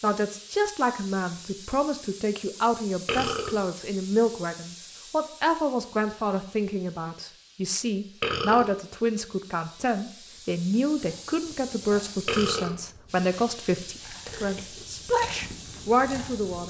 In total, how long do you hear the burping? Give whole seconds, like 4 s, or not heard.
2 s.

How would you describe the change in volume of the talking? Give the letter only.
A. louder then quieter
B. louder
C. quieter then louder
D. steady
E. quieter
D.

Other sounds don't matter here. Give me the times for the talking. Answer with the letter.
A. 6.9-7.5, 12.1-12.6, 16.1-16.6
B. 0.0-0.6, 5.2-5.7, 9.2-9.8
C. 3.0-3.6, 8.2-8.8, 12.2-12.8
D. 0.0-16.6
D.